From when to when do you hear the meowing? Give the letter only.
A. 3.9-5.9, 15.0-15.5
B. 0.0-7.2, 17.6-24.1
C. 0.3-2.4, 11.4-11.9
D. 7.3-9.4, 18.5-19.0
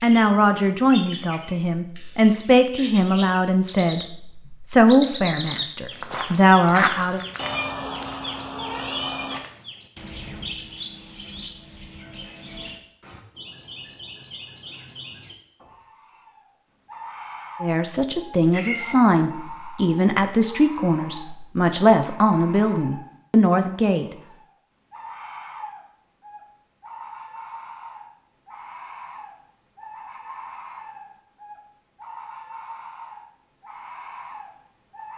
D.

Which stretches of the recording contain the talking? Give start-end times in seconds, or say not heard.
0.0-7.2, 17.6-24.1.